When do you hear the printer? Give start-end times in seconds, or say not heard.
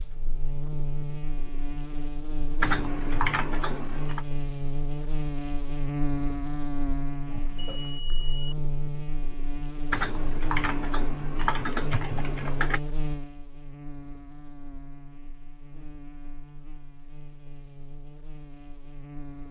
not heard.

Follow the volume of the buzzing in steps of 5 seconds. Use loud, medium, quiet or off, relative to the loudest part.
loud, loud, loud, quiet.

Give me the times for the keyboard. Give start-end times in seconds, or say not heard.
2.6-4.2, 9.9-12.8.